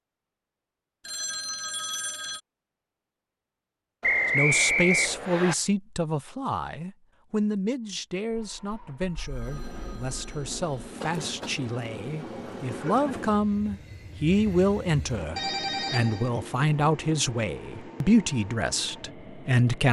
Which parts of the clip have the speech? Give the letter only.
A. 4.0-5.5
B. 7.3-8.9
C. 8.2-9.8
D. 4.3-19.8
D.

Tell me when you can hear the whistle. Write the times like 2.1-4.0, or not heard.
4.0-5.5.